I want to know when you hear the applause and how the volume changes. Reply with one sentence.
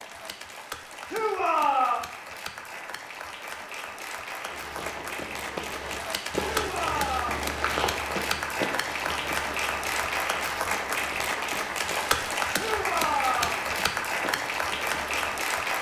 The applause can be heard from 0.0 to 15.7 s, getting louder.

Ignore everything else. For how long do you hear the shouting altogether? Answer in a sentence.
The shouting can be heard for 3 seconds in total.